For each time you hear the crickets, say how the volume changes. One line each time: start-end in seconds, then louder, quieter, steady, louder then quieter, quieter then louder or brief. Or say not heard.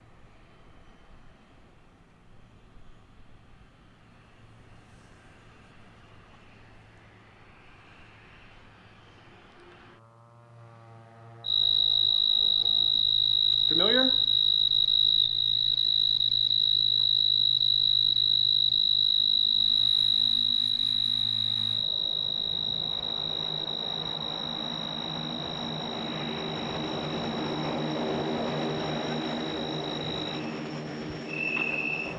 11.4-32.1 quieter.